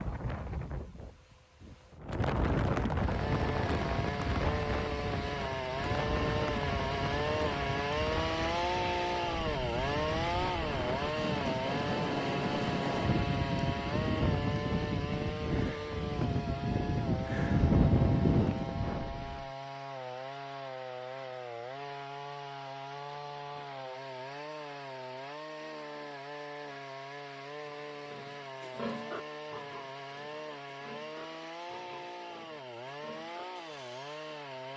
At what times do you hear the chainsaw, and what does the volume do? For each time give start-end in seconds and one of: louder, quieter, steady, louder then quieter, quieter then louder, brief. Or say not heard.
3.0-34.7 quieter.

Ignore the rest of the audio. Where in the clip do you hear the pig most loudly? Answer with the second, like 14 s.
29 s.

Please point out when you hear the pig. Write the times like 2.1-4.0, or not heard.
27.4-34.2.